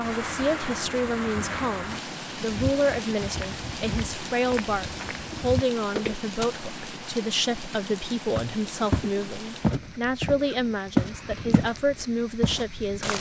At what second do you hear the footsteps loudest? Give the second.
11 s.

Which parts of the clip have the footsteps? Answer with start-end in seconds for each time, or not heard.
2.5-6.7, 8.3-11.8, 12.4-13.1.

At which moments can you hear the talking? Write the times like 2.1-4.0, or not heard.
0.0-13.1.